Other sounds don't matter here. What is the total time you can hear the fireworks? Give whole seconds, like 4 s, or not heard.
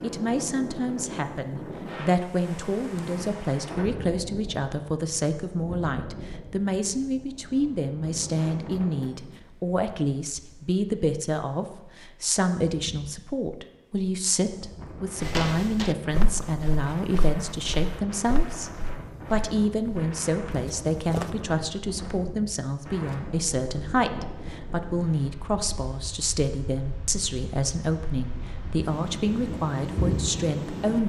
not heard.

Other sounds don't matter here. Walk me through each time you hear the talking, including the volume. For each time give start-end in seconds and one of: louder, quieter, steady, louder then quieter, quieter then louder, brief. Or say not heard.
0.0-18.7 steady
19.3-31.0 steady.